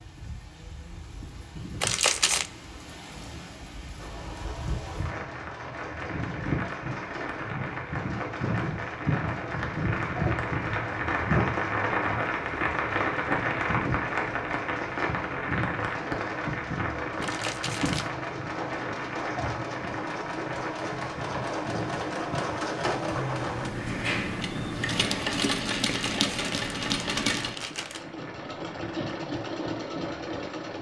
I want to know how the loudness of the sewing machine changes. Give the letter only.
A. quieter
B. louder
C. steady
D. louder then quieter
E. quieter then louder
B.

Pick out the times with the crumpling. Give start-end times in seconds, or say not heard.
1.8-2.5, 17.2-18.1, 25.9-28.1.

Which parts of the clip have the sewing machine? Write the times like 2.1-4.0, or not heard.
4.0-30.7.